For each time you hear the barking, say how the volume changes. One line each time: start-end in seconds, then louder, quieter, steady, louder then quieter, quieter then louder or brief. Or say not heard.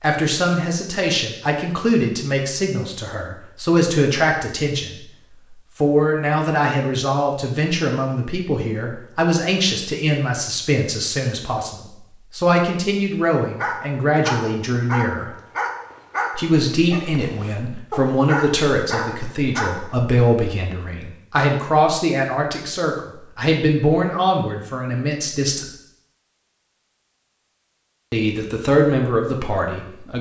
13.6-19.9 steady.